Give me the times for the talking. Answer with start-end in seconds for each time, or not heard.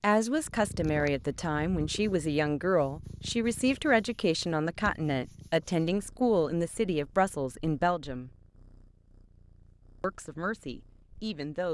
0.0-8.3, 10.0-11.6.